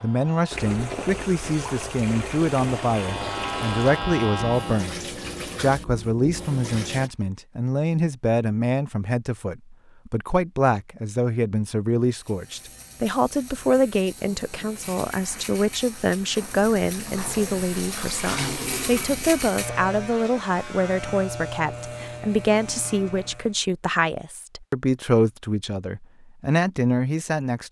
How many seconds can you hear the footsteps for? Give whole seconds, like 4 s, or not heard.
not heard.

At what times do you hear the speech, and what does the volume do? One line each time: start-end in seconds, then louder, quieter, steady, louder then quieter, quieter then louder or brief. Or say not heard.
0.0-27.6 steady.